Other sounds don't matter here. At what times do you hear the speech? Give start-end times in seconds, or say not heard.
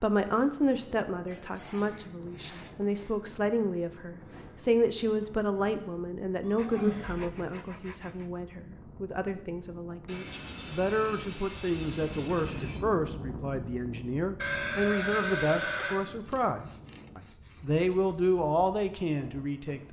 0.0-19.8.